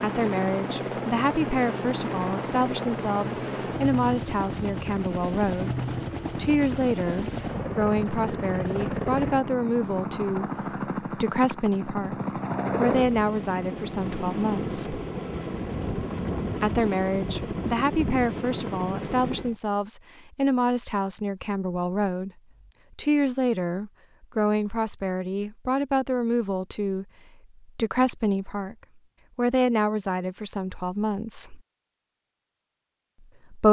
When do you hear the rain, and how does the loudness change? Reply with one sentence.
The rain can't be heard in this clip.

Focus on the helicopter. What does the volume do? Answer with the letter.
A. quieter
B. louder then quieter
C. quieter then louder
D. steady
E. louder
D.